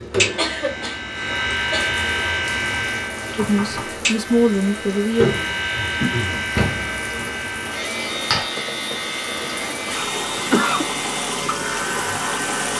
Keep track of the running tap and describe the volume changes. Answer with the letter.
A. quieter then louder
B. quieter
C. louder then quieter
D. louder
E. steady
D.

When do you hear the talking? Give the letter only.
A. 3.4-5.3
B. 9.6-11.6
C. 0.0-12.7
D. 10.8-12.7
A.